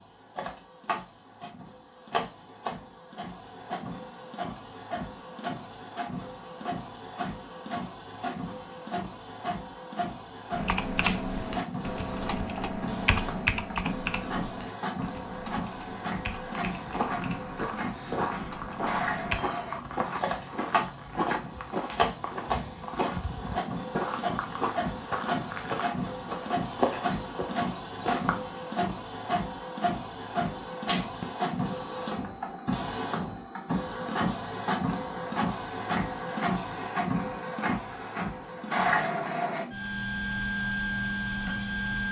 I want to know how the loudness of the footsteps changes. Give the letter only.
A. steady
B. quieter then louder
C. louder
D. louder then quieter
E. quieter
A.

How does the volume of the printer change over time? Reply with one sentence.
The volume of the printer goes up.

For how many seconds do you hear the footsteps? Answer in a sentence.
You can hear the footsteps for 12 seconds altogether.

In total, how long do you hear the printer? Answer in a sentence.
The printer can be heard for 42 seconds in total.